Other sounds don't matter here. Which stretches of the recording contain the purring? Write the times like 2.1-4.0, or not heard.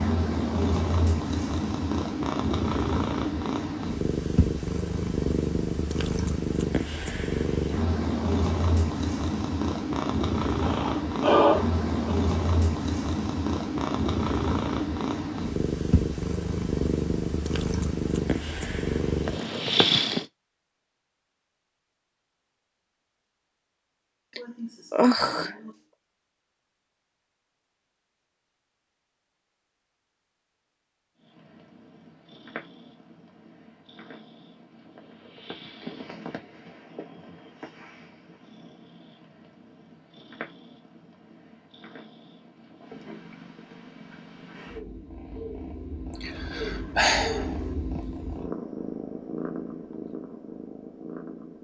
0.0-20.2, 31.2-51.5.